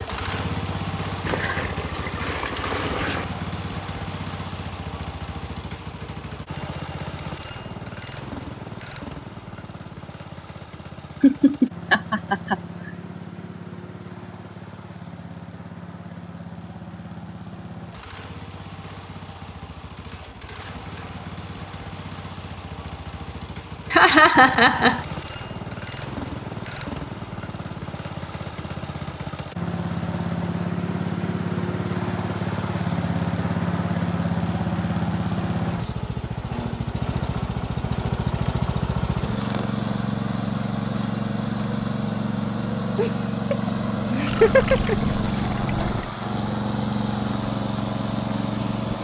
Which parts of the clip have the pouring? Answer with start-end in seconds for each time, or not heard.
1.2-3.2, 44.2-46.1.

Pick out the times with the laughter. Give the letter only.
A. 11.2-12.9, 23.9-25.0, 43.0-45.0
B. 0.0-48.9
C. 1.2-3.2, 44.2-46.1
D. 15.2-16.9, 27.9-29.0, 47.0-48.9
A.